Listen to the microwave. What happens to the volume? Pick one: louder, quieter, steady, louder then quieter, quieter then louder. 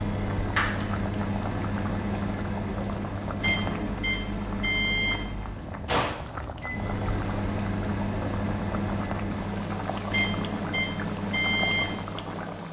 steady.